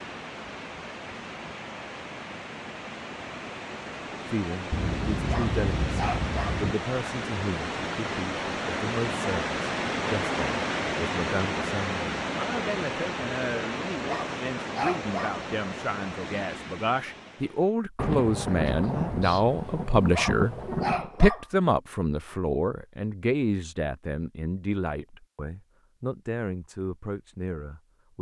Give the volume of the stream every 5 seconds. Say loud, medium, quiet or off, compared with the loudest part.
medium, loud, loud, medium, off, off.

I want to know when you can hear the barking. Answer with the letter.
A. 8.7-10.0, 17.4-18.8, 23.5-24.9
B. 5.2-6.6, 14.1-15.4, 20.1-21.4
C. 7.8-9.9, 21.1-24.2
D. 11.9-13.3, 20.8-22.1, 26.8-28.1
B.